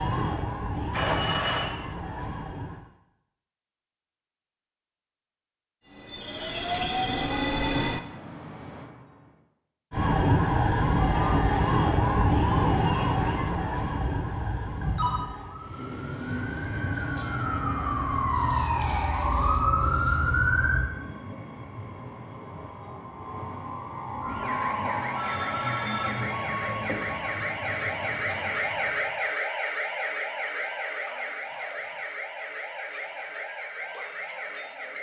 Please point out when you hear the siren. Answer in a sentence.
You can hear the siren from 0.0 to 2.9 s, from 9.9 to 20.9 s and from 24.2 to 34.9 s.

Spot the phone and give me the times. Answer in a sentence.
The phone can be heard from 0.9 to 1.8 s, from 13.9 to 15.2 s and from 25.1 to 26.3 s.